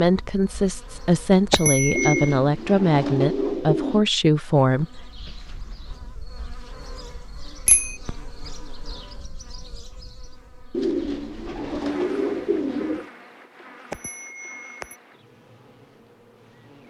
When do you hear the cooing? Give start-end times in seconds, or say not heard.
1.9-4.0, 10.7-13.1.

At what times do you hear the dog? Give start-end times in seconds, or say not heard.
not heard.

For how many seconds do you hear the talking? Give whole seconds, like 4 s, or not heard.
5 s.